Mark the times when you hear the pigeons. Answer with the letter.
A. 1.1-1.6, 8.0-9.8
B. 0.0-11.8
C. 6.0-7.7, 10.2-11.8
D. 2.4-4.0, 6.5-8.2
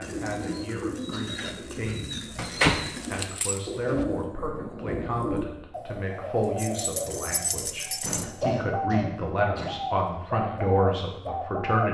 B.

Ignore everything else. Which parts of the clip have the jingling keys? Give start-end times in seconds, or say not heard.
2.4-4.0, 6.5-8.2.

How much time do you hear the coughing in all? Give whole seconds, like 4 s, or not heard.
2 s.